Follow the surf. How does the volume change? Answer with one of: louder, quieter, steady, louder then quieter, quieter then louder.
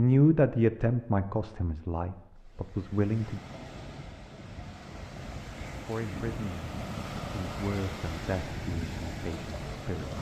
louder.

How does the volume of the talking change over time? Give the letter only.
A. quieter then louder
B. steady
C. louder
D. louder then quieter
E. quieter
E.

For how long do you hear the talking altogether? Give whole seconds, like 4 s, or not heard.
8 s.